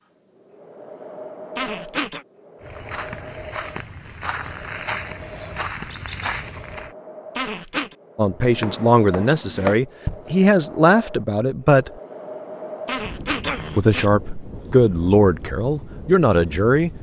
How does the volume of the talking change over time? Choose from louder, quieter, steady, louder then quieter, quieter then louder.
steady.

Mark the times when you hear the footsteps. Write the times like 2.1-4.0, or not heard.
2.6-7.0, 8.4-10.3.